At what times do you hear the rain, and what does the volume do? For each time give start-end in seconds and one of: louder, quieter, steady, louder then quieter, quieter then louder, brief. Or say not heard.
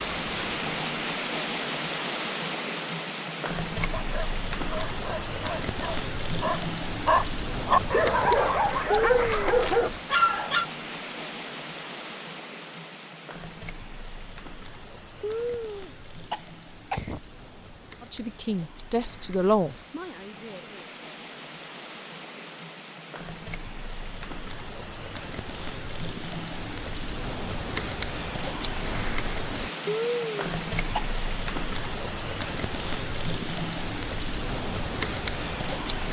0.0-36.0 quieter then louder.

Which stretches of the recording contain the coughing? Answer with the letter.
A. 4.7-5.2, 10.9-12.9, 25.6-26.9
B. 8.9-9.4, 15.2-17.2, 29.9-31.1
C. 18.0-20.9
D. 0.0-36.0
B.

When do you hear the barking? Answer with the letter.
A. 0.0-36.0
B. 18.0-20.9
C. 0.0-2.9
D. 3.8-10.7
D.